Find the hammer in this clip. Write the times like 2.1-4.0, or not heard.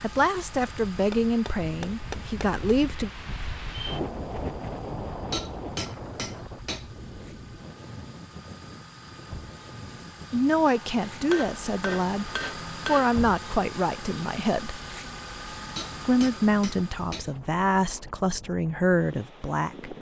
1.1-2.5, 5.3-6.9, 10.7-13.2, 15.8-17.3.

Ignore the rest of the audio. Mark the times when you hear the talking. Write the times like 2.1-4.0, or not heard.
0.0-3.1, 10.3-14.8, 16.1-19.9.